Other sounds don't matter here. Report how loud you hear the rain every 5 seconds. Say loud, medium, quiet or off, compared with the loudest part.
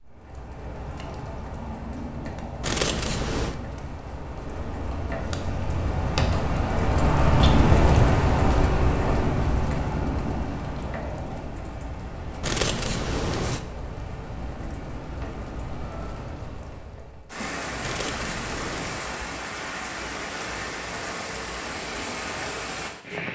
quiet, loud, medium, medium, medium.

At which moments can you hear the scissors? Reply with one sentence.
The scissors can be heard from 2.6 to 3.5 s, from 12.4 to 13.6 s and from 17.8 to 19.1 s.